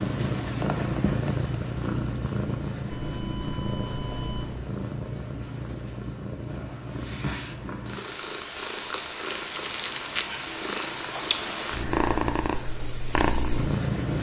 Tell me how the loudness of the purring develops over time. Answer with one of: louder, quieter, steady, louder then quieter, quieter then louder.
quieter then louder.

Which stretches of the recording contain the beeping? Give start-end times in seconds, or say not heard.
2.9-4.5.